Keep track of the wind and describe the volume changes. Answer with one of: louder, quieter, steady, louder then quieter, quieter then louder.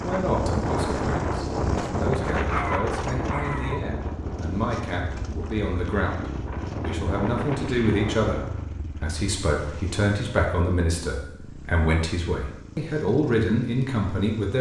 quieter then louder.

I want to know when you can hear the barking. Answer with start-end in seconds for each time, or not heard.
2.5-3.8.